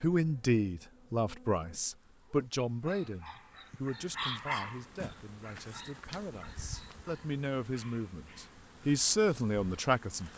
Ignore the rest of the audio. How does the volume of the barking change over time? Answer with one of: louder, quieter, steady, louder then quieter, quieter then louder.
louder then quieter.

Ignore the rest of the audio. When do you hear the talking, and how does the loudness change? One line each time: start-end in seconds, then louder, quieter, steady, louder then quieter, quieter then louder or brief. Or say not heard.
0.0-10.3 quieter then louder.